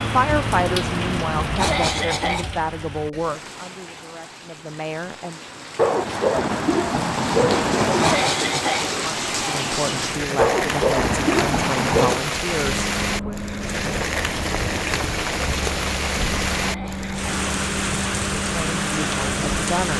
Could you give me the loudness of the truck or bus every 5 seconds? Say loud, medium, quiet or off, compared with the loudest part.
loud, off, loud, loud.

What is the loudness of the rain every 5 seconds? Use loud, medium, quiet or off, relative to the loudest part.
medium, loud, loud, loud.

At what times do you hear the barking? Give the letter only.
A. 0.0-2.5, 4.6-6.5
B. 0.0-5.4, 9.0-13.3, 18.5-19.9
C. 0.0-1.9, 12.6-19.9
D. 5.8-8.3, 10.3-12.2
D.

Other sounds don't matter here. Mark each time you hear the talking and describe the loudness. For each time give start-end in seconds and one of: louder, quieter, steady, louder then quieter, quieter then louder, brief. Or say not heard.
0.0-5.4 quieter
9.0-13.3 steady
18.5-19.9 brief.